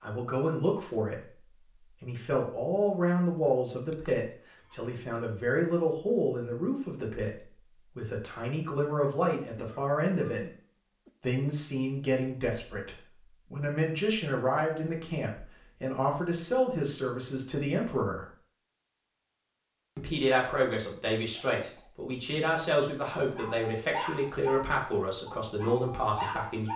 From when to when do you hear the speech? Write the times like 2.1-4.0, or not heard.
0.0-10.4, 11.2-18.2, 19.9-26.7.